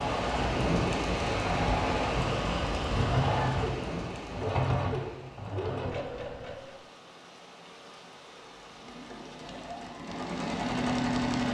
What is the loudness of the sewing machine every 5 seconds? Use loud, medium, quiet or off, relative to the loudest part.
loud, medium, loud.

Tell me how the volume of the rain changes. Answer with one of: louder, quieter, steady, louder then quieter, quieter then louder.
quieter.